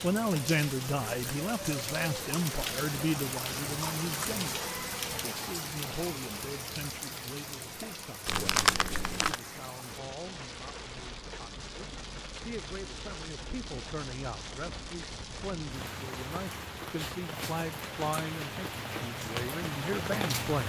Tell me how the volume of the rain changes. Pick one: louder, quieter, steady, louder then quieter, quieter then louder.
quieter then louder.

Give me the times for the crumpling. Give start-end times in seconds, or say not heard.
8.2-9.4.